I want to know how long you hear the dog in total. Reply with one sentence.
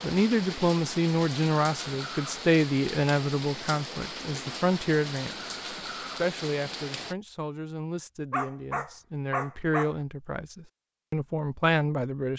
The dog can be heard for 2 seconds in total.